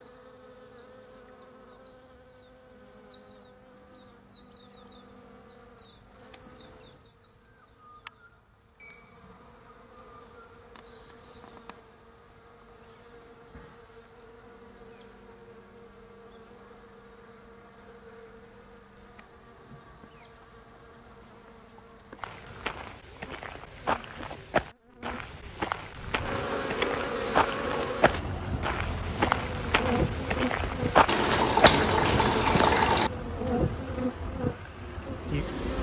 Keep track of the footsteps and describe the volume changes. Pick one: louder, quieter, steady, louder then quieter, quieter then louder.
louder.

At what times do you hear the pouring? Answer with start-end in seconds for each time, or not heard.
31.1-33.1.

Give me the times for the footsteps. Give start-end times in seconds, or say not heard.
22.1-32.9.